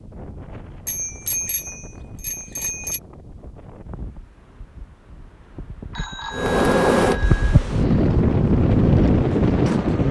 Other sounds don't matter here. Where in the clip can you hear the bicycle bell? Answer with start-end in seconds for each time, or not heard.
0.8-3.0, 5.9-7.6.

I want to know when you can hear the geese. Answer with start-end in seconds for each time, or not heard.
not heard.